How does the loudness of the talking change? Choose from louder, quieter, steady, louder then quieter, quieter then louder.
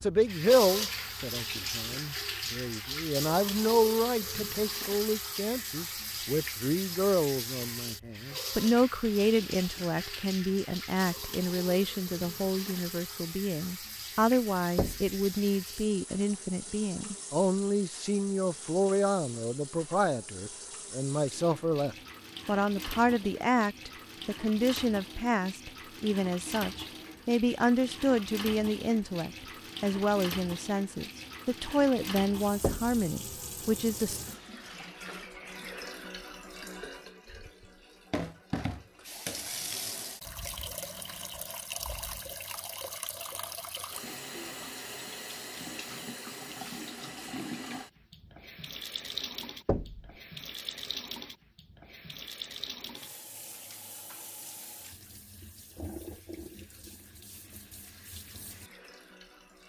steady.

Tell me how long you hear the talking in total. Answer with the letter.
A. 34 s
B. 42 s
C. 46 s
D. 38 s
A.